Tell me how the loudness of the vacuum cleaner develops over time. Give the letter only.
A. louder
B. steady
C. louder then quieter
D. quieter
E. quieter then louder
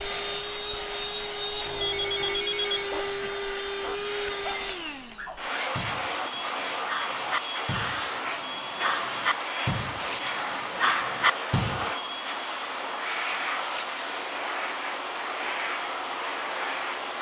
B.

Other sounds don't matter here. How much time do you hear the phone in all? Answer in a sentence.
You can hear the phone for 2 seconds altogether.